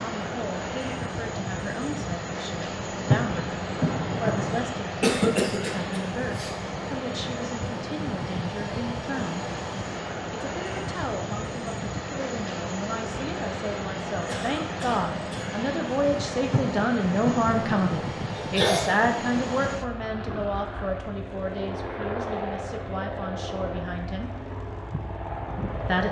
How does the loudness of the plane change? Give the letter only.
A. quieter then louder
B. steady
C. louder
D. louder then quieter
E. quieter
B.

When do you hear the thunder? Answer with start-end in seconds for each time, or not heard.
3.0-4.7, 16.5-18.1.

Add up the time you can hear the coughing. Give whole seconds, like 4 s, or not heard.
3 s.